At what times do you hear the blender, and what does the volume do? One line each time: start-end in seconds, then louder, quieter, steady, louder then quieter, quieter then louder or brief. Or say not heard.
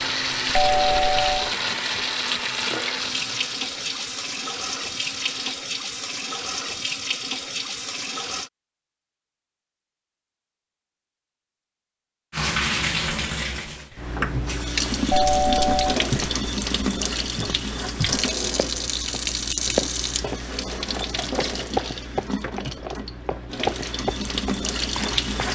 0.0-5.5 quieter.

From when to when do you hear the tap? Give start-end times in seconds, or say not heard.
0.0-8.5, 12.3-25.4.